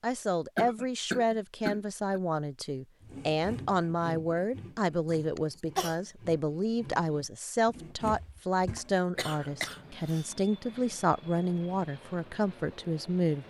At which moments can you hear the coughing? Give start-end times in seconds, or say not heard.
0.6-2.2, 5.0-6.0, 9.2-10.8.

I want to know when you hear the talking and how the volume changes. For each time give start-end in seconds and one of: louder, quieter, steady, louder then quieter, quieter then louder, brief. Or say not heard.
0.0-13.4 steady.